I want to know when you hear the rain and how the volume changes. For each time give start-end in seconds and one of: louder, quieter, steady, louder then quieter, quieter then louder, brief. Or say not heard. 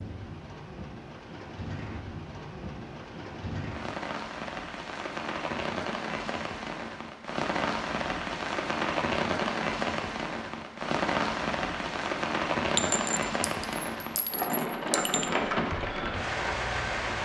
0.0-17.2 louder.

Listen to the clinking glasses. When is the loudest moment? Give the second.
13 s.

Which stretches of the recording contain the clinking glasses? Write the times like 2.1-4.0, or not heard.
12.8-15.3.